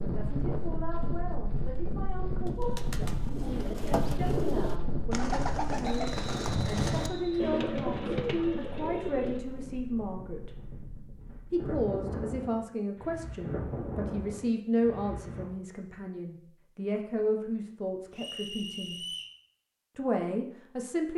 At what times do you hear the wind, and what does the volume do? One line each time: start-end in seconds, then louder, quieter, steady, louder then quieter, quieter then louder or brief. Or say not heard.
0.0-15.5 quieter then louder.